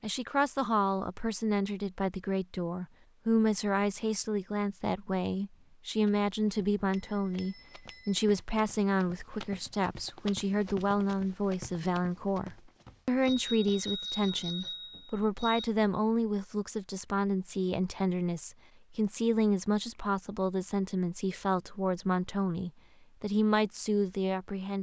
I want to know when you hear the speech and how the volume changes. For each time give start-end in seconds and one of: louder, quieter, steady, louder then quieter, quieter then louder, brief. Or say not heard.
0.0-24.7 steady.